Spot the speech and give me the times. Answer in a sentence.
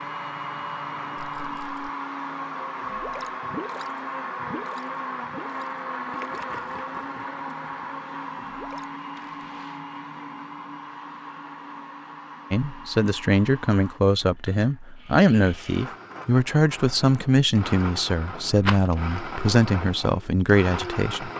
You can hear the speech from 12.5 to 21.3 s.